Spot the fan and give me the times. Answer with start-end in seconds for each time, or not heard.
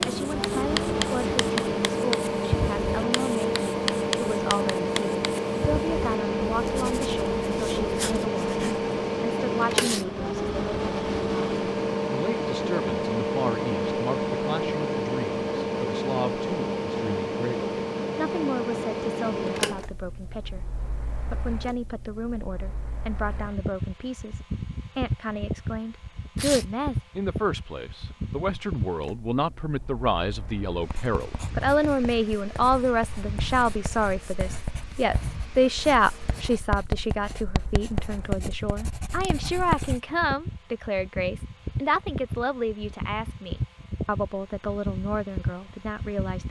0.0-46.4.